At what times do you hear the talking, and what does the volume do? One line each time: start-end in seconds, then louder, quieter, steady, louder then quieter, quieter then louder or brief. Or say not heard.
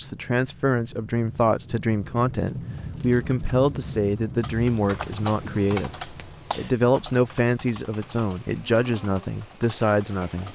0.0-10.4 steady.